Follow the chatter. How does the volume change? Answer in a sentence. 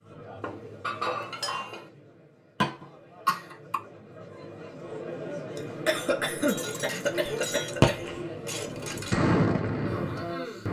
The loudness of the chatter goes up.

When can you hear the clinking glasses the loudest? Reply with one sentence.
The volume of the clinking glasses peaks at 1 second.